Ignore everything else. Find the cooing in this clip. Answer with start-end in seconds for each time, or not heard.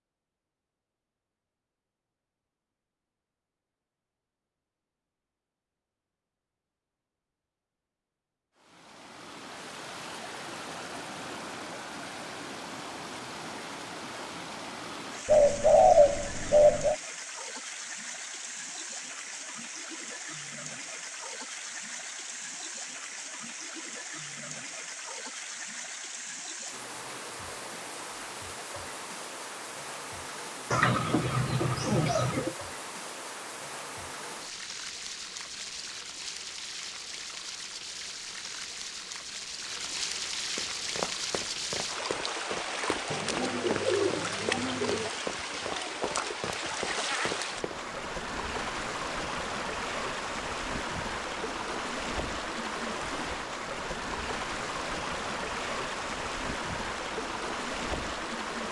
15.2-16.9, 30.7-32.5, 43.1-45.1.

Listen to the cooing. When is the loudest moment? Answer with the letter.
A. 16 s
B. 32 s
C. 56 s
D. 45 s
A.